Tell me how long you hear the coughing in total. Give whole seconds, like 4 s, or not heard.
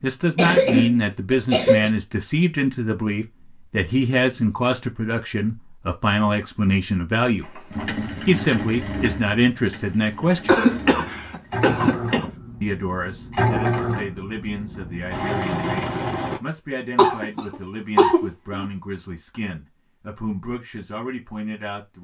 5 s.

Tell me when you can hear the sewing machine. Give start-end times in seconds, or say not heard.
7.4-16.4.